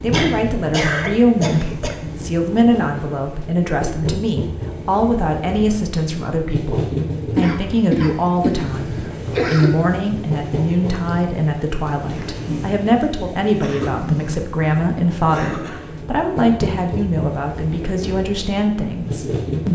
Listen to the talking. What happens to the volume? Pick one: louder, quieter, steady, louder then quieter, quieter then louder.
steady.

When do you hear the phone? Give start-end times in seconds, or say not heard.
not heard.